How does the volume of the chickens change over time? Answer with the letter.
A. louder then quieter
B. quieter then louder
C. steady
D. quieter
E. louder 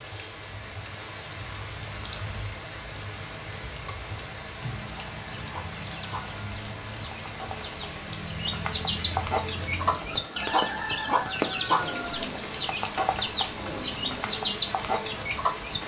E.